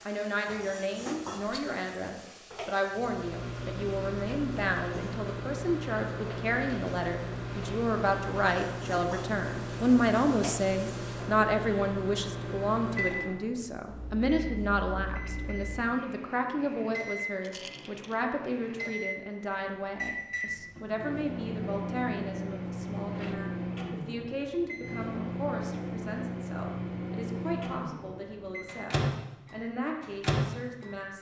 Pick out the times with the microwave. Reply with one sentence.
The microwave can be heard from 2.9 to 31.1 s.